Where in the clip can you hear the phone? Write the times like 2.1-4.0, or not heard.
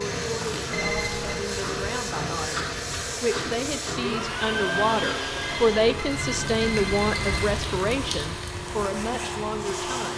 0.7-1.4, 5.4-7.5.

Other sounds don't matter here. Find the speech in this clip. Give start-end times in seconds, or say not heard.
0.0-10.1.